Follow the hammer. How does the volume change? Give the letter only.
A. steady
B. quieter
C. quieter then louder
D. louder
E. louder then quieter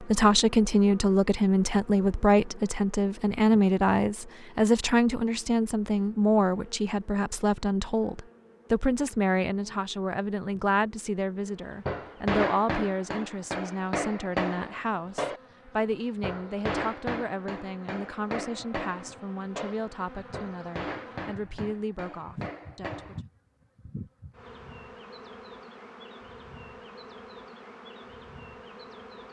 B.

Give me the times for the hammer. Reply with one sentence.
You can hear the hammer from 11.8 to 23.2 s.